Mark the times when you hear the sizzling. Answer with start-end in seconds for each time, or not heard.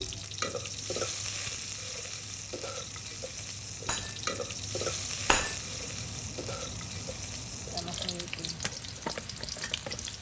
0.0-10.1.